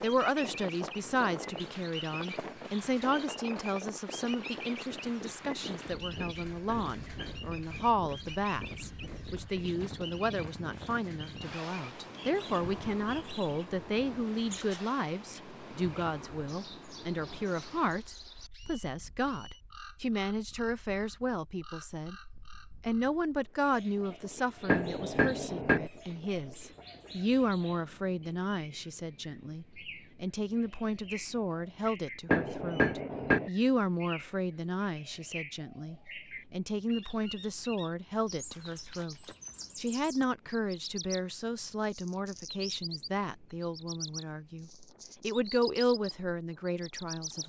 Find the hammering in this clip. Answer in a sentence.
The hammering can be heard from 6.2 to 7.4 s, from 24.6 to 25.9 s and from 32.2 to 33.5 s.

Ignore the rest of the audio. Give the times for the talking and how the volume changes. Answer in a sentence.
The talking can be heard from 0.0 to 47.4 s, at a steady volume.